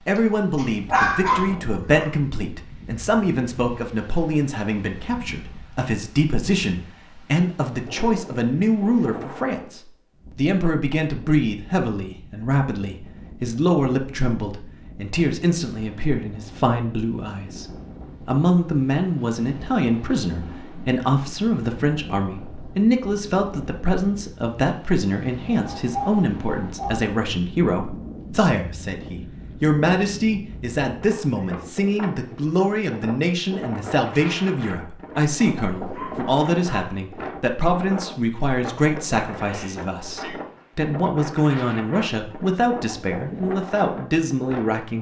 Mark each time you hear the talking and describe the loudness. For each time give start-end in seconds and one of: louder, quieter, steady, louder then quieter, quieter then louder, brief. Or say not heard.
0.1-44.9 steady.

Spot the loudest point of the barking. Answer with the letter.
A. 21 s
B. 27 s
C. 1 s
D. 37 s
C.